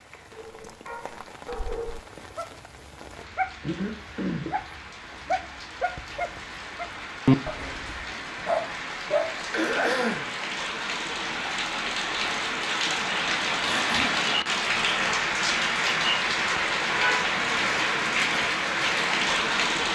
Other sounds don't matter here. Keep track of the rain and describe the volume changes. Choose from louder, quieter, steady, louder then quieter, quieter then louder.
louder.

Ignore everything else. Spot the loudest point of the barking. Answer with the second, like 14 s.
7 s.